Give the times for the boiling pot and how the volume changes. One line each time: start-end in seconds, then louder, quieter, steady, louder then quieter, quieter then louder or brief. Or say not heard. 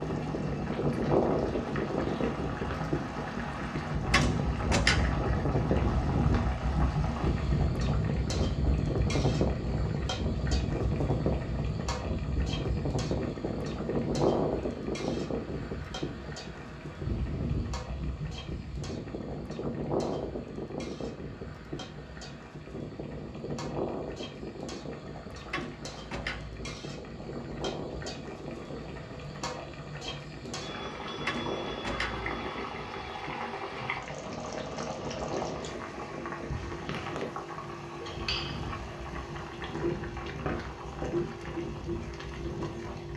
0.0-43.1 quieter then louder.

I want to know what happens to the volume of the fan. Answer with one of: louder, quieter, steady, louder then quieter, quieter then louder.
quieter.